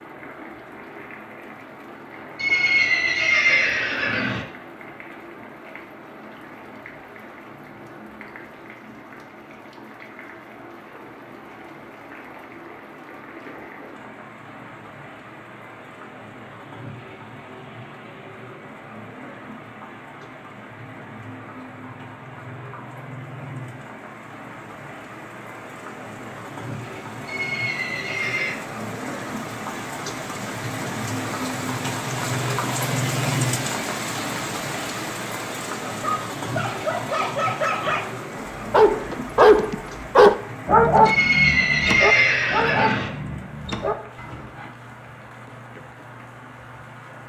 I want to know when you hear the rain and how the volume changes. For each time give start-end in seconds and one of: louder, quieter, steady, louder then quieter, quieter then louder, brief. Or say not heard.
0.0-47.2 louder then quieter.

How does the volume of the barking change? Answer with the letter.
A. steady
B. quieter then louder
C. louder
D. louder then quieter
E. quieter
D.